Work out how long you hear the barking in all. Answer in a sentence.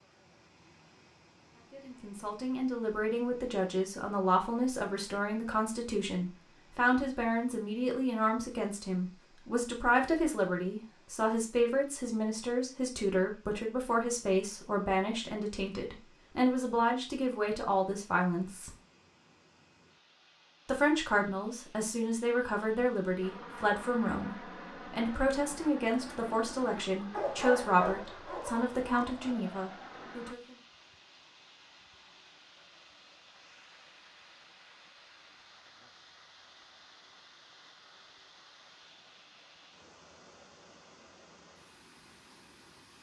The barking can be heard for 2 seconds in total.